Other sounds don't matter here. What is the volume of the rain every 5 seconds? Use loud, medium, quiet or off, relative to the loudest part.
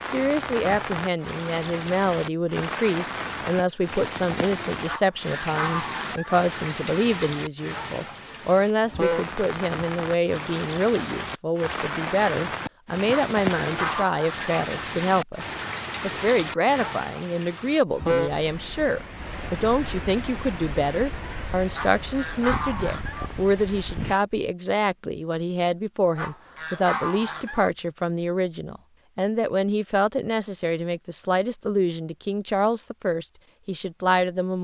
loud, loud, loud, loud, medium, off, off.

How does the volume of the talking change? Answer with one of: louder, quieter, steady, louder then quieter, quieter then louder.
steady.